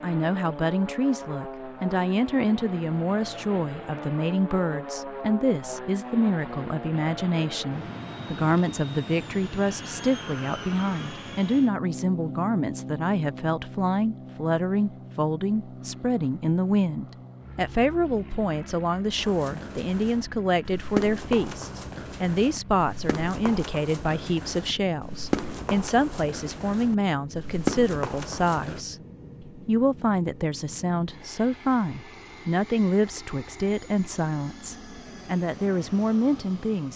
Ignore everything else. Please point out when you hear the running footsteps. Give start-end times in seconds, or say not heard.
19.1-28.8.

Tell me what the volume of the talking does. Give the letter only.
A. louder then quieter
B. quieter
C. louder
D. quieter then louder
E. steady
E.